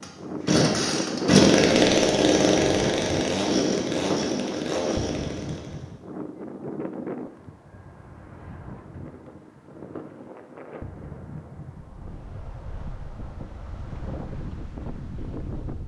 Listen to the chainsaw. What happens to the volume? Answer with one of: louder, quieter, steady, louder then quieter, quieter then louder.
quieter.